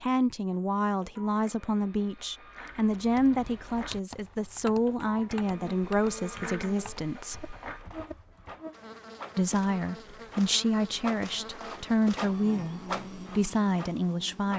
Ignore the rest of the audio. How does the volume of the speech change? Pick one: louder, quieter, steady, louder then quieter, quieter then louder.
steady.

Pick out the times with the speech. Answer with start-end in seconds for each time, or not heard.
0.0-7.5, 9.3-14.5.